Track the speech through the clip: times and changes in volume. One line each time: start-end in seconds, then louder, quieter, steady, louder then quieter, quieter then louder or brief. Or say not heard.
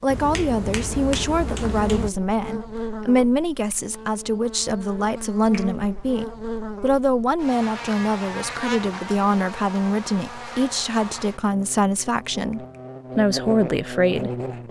0.0-14.6 steady.